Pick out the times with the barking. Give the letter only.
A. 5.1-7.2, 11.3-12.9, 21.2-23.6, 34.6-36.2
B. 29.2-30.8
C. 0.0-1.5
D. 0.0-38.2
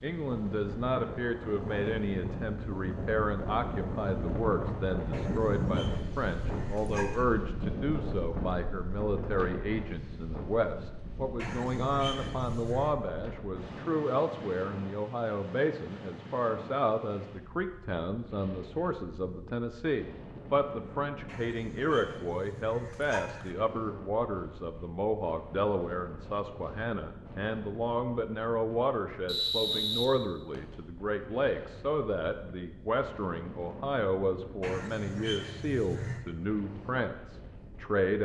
A.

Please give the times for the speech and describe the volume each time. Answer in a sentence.
The speech can be heard from 0.0 to 38.2 s, at a steady volume.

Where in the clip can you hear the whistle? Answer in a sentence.
The whistle can be heard from 29.2 to 30.8 s.